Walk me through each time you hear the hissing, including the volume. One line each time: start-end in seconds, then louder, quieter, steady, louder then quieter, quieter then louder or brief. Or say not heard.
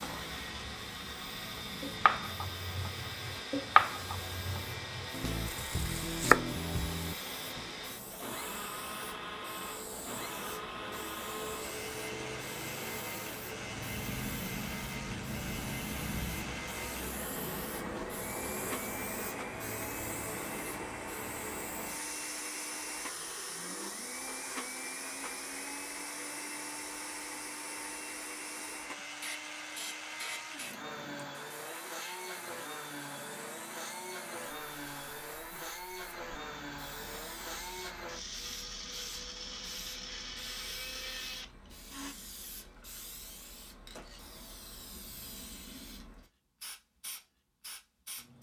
0.0-48.3 louder then quieter.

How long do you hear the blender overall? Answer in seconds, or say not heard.
42 s.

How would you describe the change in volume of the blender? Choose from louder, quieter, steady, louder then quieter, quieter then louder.
steady.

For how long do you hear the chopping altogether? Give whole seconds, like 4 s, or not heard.
6 s.